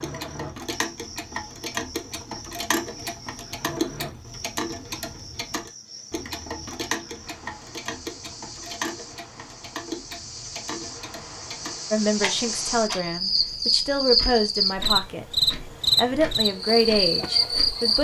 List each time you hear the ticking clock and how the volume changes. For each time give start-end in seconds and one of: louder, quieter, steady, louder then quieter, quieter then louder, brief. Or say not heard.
0.0-17.8 quieter.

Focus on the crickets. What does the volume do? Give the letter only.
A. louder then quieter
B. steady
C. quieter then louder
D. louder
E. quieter
D.